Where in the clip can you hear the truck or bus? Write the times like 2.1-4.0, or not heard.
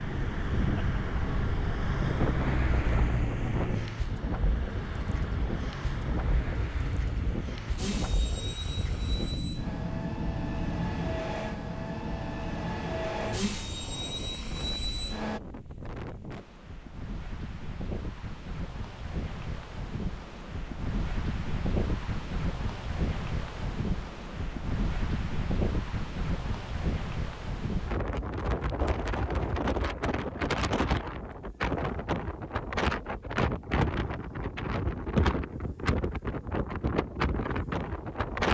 0.0-15.4.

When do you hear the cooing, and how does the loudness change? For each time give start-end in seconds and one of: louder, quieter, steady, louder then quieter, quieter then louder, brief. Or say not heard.
not heard.